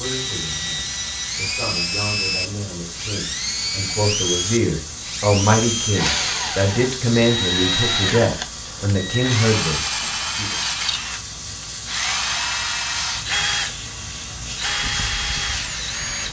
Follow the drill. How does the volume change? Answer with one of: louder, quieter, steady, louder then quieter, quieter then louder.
steady.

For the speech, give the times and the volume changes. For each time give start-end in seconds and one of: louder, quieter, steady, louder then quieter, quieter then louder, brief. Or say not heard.
0.0-10.6 louder.